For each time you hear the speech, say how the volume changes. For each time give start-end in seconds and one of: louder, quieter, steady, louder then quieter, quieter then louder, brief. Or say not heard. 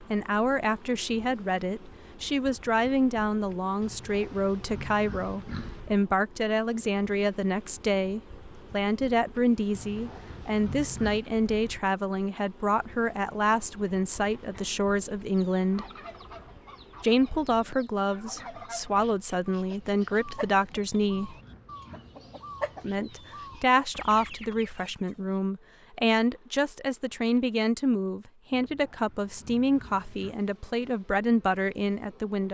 0.1-15.8 steady
17.0-21.4 quieter then louder
22.8-32.4 steady.